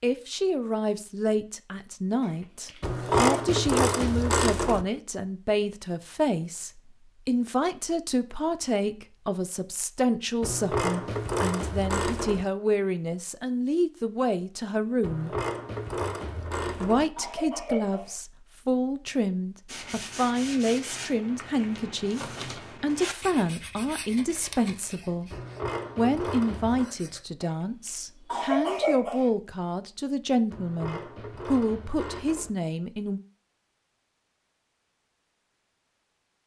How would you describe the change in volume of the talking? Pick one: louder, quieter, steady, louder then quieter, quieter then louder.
steady.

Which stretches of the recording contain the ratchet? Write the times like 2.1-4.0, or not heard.
2.8-4.8, 10.4-12.4, 15.0-17.1, 25.3-26.9, 30.5-32.5.